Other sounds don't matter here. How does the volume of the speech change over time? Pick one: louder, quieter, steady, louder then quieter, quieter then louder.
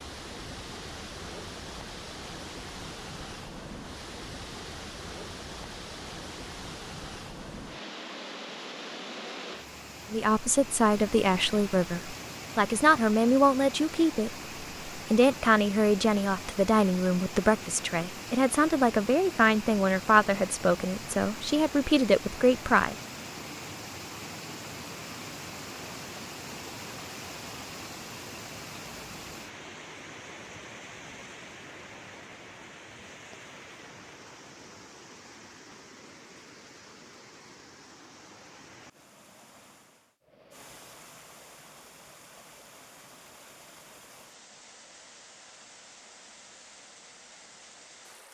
steady.